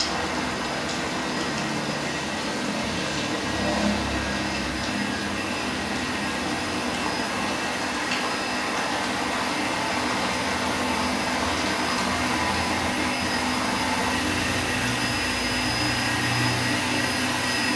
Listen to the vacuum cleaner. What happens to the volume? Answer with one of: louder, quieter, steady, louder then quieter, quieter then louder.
louder.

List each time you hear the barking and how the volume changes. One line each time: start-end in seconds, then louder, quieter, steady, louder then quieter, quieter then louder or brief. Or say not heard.
not heard.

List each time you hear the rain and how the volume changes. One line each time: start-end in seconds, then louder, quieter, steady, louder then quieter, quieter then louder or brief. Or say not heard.
0.0-17.7 steady.